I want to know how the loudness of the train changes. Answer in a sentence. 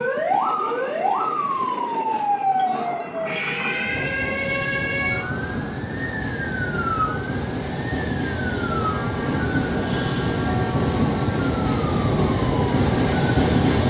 The loudness of the train goes up.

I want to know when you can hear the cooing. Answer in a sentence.
The cooing can't be heard in this clip.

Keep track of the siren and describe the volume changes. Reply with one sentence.
The loudness of the siren goes down.